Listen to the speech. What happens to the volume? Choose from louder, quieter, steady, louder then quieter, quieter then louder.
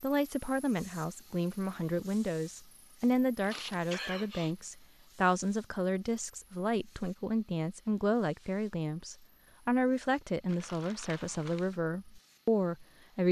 steady.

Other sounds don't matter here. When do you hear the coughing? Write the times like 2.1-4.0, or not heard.
3.5-4.5.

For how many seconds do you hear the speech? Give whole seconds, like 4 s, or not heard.
13 s.